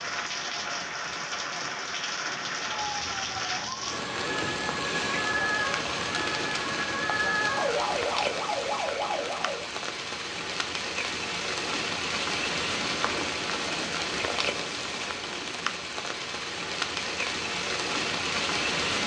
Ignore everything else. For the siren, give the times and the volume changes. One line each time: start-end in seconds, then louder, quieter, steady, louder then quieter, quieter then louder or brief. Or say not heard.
2.7-9.7 louder.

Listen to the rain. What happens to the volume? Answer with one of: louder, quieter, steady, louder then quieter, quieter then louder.
steady.